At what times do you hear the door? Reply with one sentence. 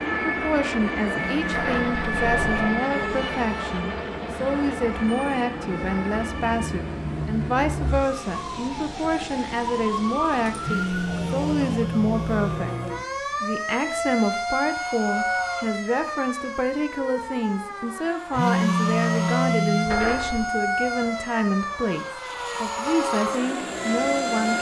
You can hear the door from 1.5 to 2.8 s and from 19.9 to 20.5 s.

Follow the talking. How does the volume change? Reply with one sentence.
The volume of the talking stays about the same.